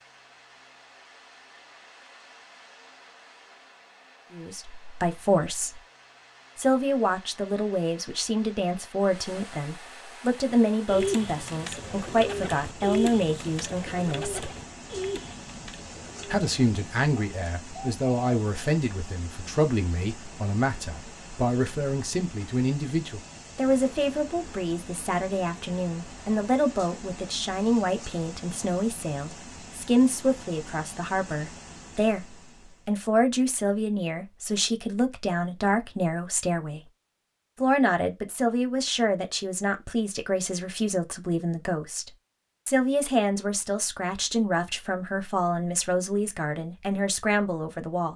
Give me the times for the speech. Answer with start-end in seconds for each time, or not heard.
4.3-5.8, 6.5-14.5, 16.2-36.8, 37.6-48.1.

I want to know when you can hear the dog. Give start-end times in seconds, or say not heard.
not heard.